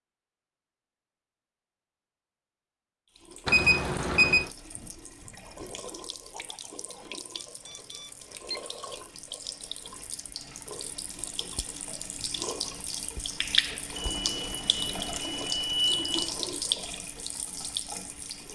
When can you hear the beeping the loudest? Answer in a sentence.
The loudest moment of the beeping is at 4 seconds.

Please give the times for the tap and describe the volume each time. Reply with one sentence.
The tap can be heard from 3.1 to 18.5 s, getting louder.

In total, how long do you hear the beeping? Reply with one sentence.
You can hear the beeping for 5 seconds altogether.